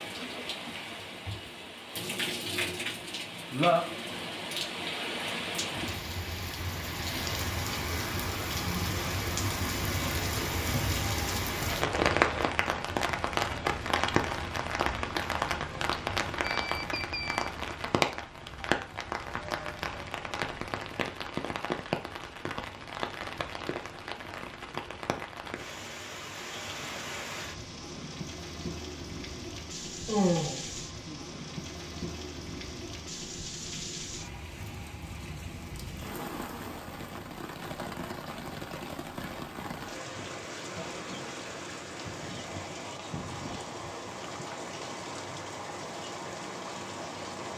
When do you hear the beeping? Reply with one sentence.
The beeping can be heard from 16.4 to 17.5 s.